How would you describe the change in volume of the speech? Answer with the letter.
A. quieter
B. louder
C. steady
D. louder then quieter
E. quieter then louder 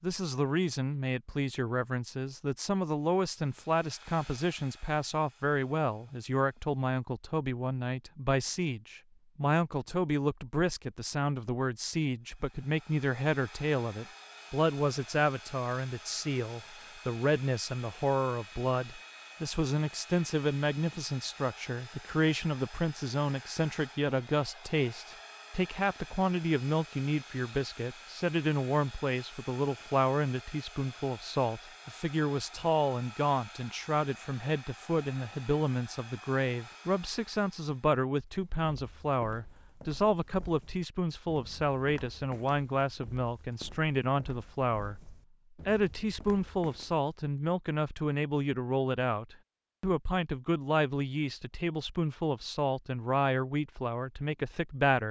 C.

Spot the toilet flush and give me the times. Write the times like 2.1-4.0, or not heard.
not heard.